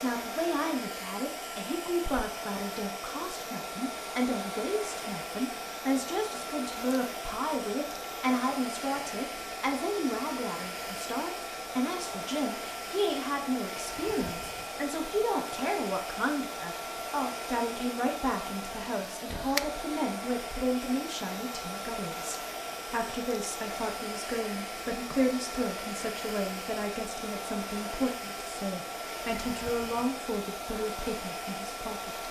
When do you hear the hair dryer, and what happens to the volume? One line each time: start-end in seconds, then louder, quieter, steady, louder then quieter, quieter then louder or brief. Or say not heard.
0.0-32.2 steady.